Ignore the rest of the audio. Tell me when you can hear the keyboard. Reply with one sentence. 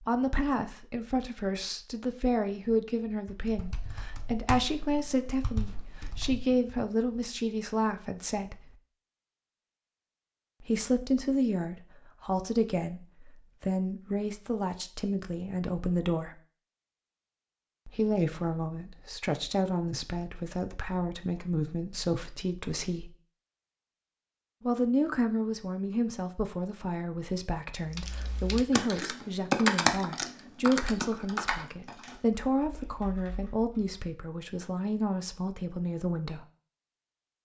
You can hear the keyboard from 3.2 to 6.8 s and from 27.8 to 34.0 s.